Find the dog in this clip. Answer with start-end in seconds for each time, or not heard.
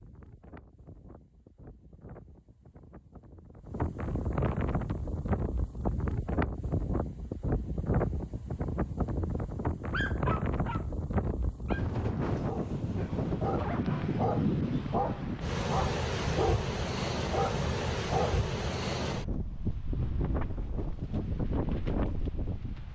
9.9-18.5.